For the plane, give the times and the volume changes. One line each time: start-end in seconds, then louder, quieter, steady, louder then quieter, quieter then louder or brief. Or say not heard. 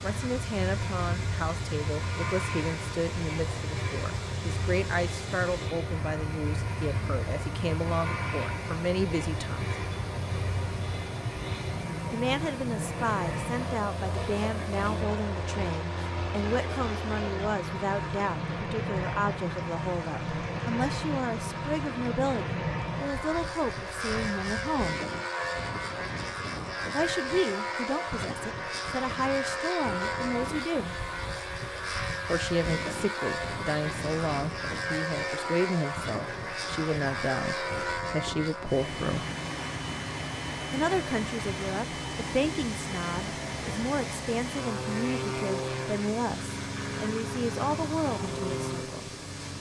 0.0-49.5 steady.